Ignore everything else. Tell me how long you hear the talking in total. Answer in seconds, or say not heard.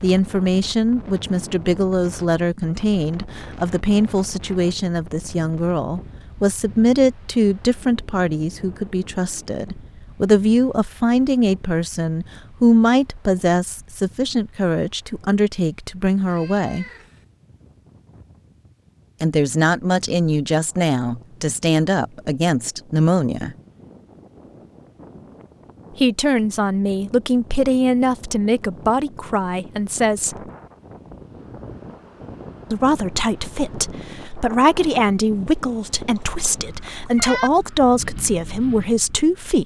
33 s.